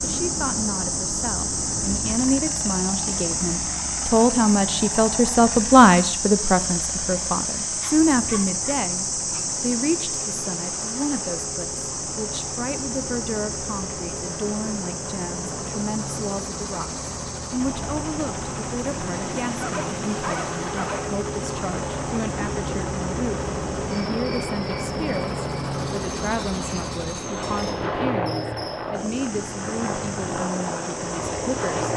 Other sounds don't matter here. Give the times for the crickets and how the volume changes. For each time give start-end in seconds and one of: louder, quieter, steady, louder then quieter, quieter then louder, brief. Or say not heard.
0.0-31.9 quieter.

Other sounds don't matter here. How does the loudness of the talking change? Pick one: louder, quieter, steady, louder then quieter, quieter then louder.
quieter.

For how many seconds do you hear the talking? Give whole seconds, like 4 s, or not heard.
32 s.